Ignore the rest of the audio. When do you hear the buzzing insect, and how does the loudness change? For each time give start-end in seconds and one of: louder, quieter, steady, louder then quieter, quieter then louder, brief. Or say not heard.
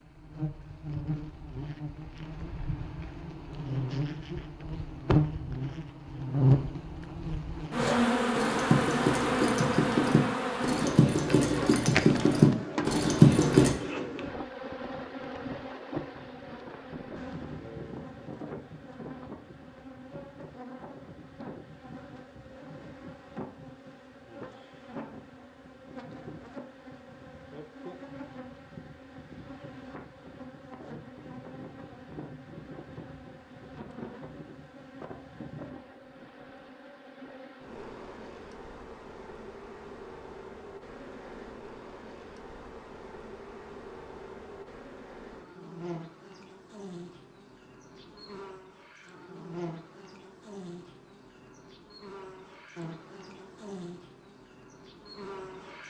0.0-55.8 quieter.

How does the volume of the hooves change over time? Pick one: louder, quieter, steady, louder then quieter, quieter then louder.
louder.